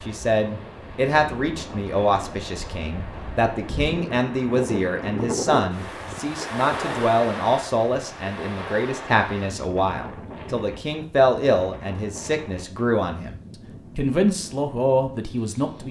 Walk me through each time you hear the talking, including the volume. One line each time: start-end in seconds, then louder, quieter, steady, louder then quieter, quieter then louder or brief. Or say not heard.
0.1-15.8 steady.